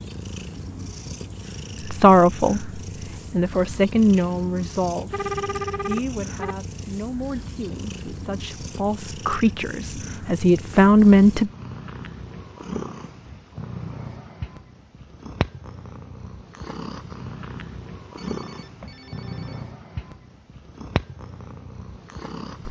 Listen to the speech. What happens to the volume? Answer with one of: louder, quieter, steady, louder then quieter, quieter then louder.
quieter then louder.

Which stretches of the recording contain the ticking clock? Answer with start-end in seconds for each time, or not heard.
not heard.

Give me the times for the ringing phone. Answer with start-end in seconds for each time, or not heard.
5.1-6.6, 18.1-19.6.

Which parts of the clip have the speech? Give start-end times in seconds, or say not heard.
1.9-11.5.